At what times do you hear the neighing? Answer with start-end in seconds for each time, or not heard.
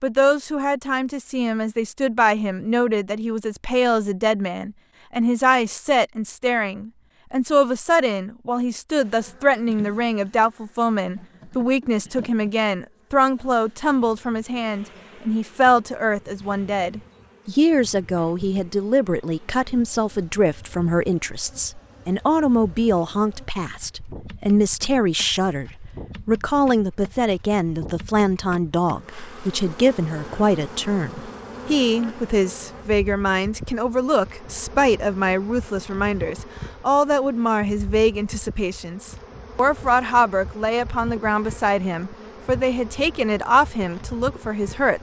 not heard.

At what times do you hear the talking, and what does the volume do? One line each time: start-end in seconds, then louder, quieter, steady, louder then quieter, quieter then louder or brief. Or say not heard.
0.0-44.9 steady.